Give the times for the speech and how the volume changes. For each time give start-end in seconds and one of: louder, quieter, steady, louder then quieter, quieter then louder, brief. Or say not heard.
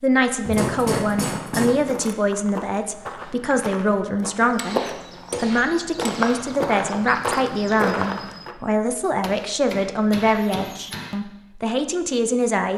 0.0-12.7 steady.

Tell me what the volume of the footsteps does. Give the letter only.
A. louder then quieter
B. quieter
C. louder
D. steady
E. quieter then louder
C.